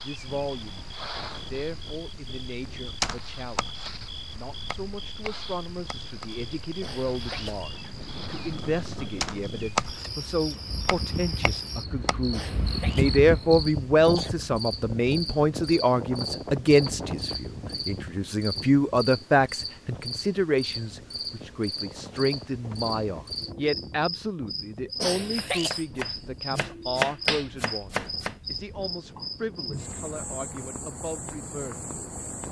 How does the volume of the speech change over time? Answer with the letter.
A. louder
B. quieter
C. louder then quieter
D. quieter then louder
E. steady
C.